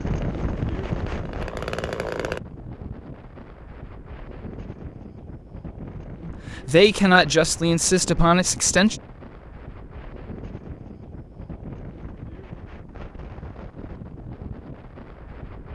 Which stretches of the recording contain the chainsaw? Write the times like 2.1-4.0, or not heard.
0.0-2.4.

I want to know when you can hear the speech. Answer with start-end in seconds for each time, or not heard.
6.2-8.9.